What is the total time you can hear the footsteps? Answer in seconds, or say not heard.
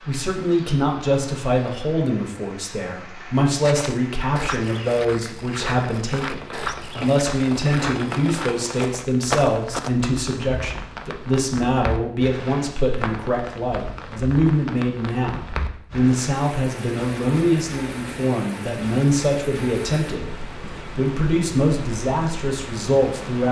6 s.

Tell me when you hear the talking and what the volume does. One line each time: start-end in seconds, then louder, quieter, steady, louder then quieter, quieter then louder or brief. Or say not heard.
0.1-23.4 steady.